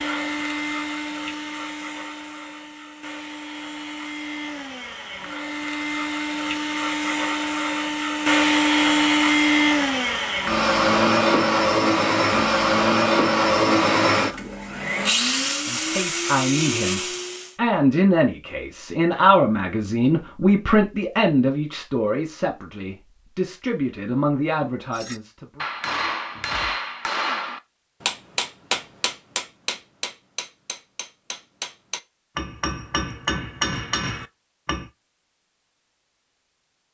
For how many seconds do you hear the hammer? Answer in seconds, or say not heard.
10 s.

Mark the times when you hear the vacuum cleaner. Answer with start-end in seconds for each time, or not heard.
0.0-17.6.